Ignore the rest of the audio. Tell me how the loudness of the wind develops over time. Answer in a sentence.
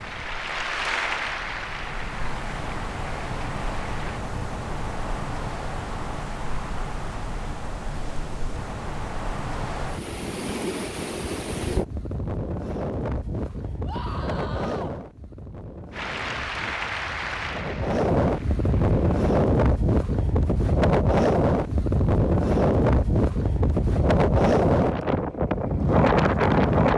The loudness of the wind goes up.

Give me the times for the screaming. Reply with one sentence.
You can hear the screaming from 13.8 to 14.9 s.